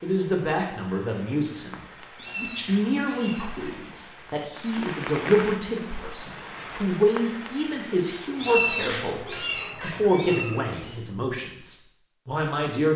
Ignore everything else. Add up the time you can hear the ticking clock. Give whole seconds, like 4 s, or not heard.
not heard.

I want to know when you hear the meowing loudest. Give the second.
9 s.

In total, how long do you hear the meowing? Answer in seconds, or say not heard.
4 s.